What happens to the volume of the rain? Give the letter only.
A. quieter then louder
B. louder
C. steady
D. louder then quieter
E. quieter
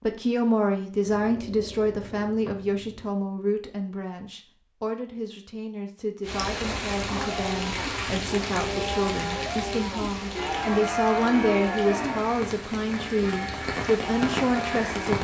A.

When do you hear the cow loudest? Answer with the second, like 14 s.
11 s.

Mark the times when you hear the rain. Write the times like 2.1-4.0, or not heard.
6.2-15.1.